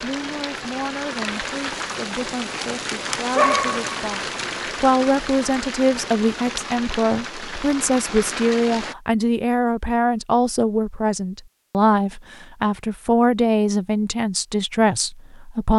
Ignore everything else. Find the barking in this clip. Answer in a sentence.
The barking can be heard from 3.4 to 4.8 s.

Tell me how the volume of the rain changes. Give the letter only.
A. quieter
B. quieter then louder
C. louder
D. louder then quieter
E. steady
E.